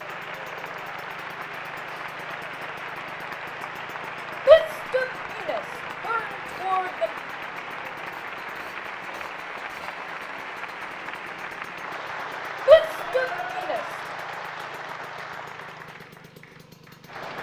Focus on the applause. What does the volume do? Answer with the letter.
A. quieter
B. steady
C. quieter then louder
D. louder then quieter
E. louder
B.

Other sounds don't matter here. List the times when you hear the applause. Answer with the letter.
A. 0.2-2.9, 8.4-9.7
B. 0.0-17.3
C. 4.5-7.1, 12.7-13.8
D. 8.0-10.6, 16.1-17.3
B.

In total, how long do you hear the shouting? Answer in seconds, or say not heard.
4 s.